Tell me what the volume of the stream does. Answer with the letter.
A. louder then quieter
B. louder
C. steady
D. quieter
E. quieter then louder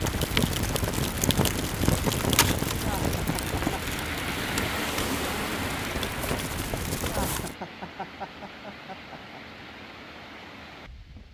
A.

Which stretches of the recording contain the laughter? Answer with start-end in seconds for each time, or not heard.
2.8-3.8, 7.0-9.4.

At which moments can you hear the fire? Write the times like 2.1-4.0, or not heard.
0.0-7.5.